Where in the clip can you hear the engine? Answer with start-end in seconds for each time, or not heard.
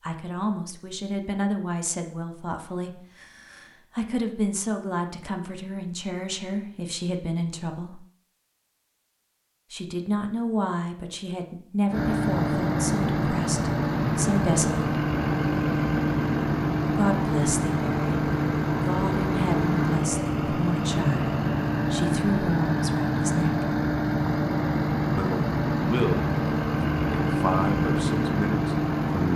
11.9-29.3.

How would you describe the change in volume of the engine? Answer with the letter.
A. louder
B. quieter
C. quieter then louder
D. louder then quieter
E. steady
E.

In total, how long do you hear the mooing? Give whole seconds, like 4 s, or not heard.
not heard.